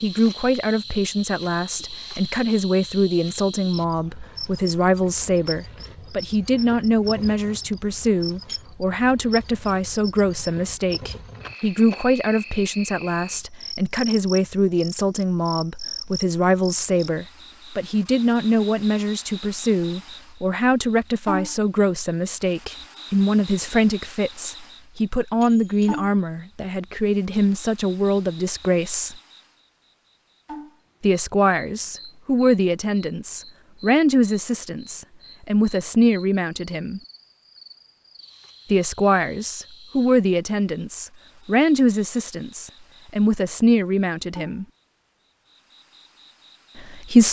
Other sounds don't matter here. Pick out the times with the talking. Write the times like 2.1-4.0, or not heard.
0.0-29.1, 31.0-37.0, 38.7-44.6, 46.8-47.2.